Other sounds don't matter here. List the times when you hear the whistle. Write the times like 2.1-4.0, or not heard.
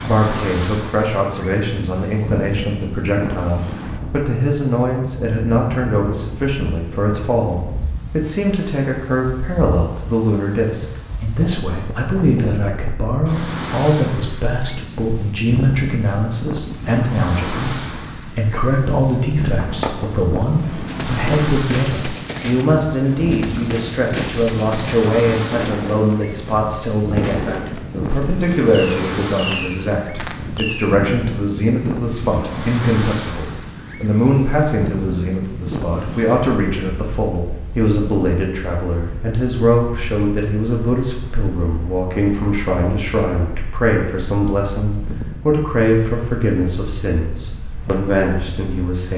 not heard.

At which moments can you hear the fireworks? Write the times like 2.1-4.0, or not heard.
19.6-31.0.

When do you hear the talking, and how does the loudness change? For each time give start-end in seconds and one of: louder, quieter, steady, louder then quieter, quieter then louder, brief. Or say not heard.
0.0-49.1 steady.